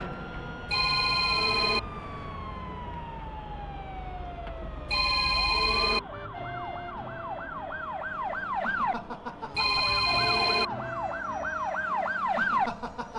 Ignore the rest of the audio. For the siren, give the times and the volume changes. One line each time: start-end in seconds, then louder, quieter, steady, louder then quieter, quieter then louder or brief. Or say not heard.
0.0-13.1 louder.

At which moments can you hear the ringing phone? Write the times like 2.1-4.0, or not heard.
0.7-1.8, 4.8-6.0, 9.5-10.7.